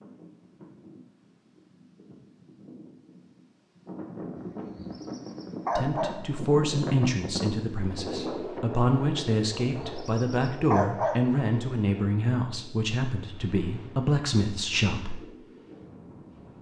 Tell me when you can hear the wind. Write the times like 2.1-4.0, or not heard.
0.0-16.5.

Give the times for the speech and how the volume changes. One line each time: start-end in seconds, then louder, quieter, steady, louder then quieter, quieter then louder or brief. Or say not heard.
5.8-15.2 steady.